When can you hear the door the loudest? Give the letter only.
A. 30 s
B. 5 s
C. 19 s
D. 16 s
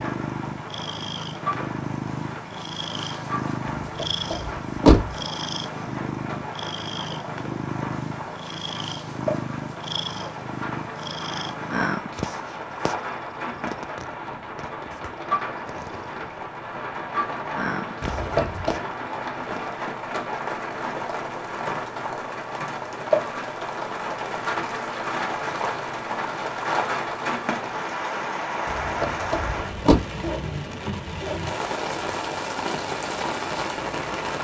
B.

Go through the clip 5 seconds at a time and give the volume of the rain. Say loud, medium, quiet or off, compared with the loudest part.
medium, medium, medium, loud, loud, loud, loud.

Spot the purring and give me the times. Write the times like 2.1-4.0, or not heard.
0.0-19.6.